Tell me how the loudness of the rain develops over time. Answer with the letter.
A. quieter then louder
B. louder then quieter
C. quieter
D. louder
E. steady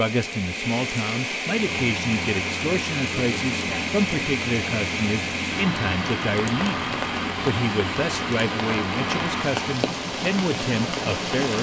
E.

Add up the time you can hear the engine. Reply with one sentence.
You can hear the engine for 10 seconds altogether.